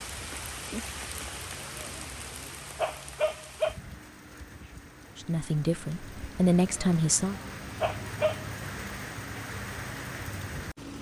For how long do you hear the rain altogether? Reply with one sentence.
You can hear the rain for 11 seconds altogether.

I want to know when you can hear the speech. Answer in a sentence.
The speech can be heard from 5.2 to 7.4 s.